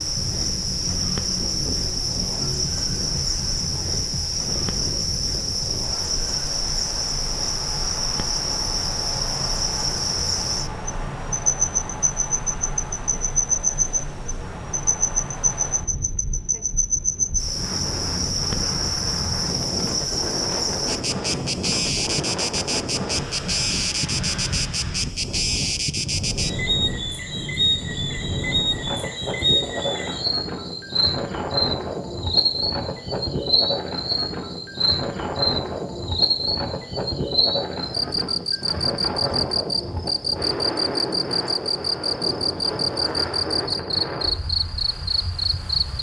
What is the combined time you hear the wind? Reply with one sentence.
The wind can be heard for 46 seconds in total.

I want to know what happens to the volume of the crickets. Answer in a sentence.
The volume of the crickets stays about the same.